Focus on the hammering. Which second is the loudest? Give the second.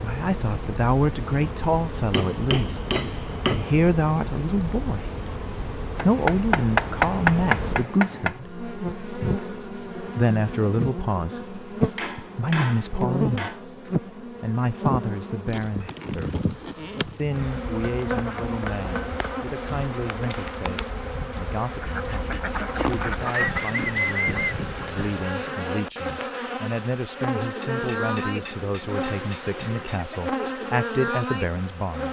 7 s.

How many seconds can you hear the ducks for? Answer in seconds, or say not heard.
4 s.